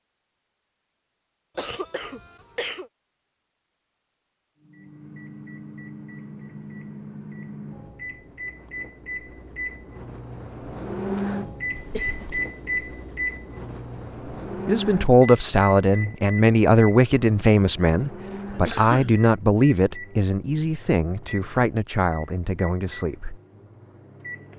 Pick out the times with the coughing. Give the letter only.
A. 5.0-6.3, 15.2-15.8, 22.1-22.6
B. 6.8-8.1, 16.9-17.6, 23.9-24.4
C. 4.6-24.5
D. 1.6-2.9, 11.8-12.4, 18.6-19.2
D.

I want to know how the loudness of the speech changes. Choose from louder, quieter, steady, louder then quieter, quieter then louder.
quieter.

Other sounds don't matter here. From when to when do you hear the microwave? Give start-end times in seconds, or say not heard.
4.6-24.5.